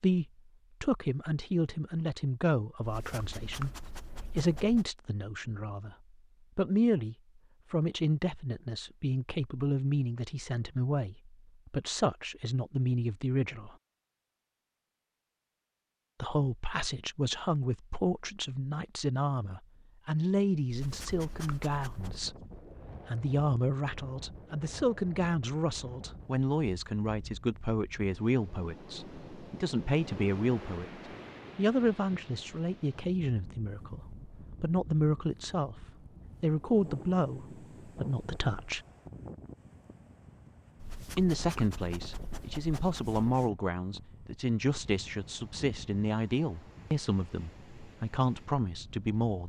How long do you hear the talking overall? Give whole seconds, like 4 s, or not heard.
44 s.